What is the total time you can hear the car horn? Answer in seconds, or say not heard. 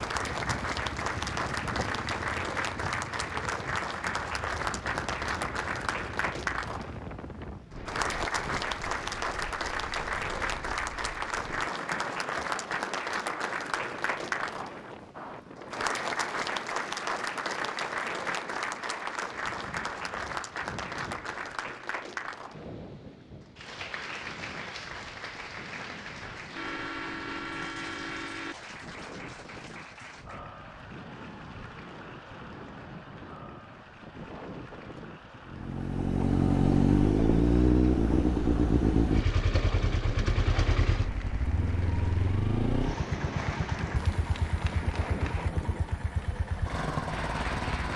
2 s.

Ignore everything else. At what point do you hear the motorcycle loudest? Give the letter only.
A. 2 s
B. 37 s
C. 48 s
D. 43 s
B.